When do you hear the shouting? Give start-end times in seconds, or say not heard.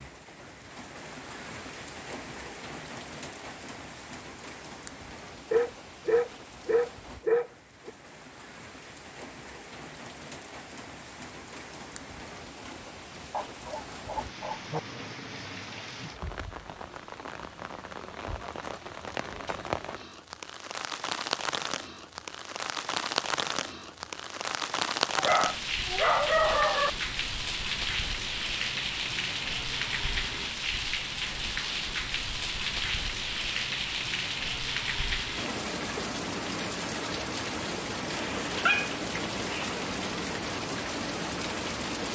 not heard.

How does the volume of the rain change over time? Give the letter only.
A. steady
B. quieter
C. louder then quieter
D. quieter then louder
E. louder
E.